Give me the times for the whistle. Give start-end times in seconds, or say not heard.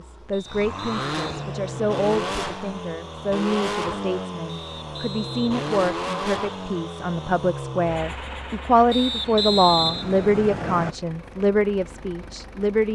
0.3-2.4, 4.5-5.7, 8.9-10.9.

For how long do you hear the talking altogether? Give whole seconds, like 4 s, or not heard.
13 s.